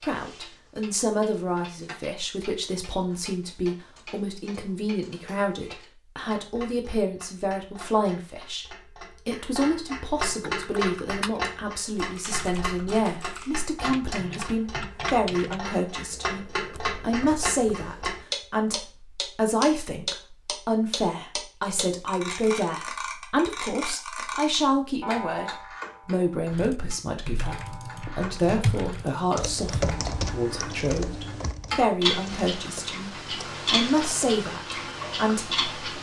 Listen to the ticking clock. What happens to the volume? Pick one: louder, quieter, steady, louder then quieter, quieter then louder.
louder.